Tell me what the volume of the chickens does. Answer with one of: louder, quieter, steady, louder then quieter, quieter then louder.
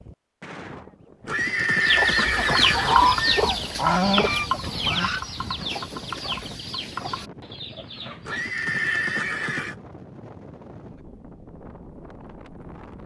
quieter.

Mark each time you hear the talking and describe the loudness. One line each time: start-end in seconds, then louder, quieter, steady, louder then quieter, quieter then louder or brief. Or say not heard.
not heard.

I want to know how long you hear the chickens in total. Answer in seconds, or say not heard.
7 s.